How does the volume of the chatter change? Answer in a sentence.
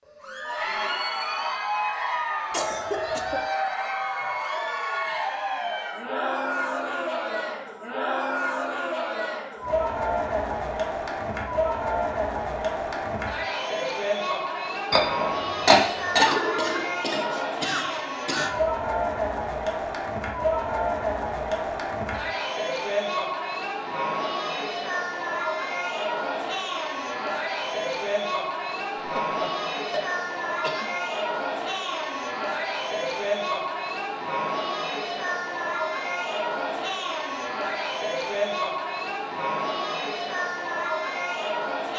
The volume of the chatter stays about the same.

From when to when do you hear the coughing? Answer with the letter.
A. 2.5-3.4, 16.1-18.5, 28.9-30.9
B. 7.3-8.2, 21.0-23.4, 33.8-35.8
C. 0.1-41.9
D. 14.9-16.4
A.